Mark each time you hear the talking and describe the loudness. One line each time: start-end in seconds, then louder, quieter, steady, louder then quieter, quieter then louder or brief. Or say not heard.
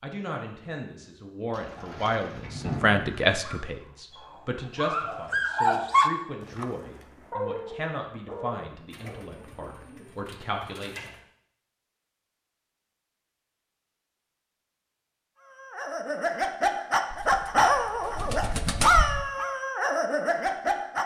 0.0-11.2 louder then quieter.